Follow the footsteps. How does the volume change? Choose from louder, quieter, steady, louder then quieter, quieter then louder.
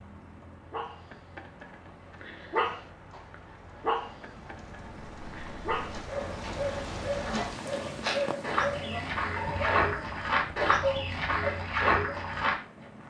louder.